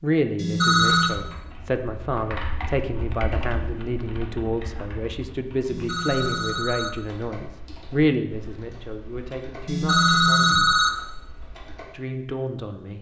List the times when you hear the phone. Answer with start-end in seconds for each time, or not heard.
0.3-1.1, 5.7-6.9, 9.7-10.9.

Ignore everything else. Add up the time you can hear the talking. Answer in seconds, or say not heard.
12 s.